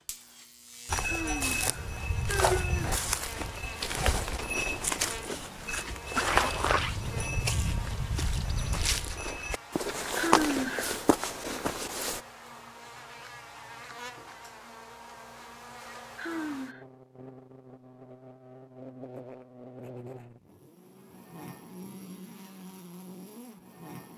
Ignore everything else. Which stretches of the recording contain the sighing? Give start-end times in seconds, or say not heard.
1.0-3.0, 10.2-11.0, 16.1-16.9.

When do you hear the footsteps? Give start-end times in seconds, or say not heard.
0.8-12.2.